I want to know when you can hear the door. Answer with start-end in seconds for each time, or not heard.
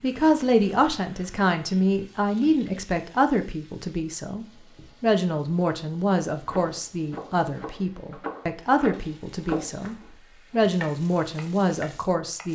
not heard.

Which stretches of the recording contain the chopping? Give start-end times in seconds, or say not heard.
6.5-12.5.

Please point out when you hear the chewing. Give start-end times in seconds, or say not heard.
not heard.